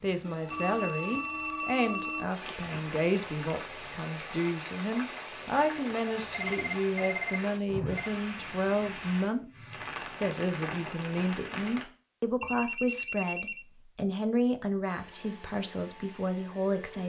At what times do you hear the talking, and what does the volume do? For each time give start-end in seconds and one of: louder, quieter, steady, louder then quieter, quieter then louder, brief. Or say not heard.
0.0-17.0 steady.